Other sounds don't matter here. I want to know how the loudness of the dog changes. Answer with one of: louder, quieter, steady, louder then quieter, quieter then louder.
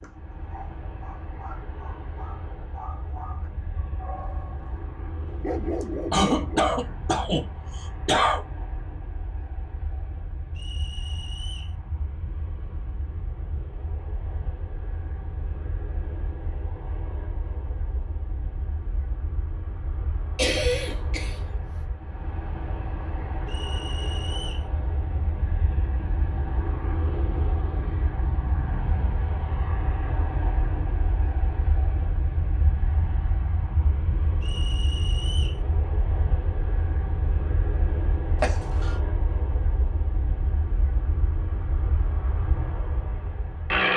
louder.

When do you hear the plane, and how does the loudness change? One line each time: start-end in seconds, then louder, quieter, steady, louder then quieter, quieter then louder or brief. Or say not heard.
0.0-43.9 louder.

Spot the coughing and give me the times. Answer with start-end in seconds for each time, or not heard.
6.1-8.4, 20.4-21.4, 38.4-39.0.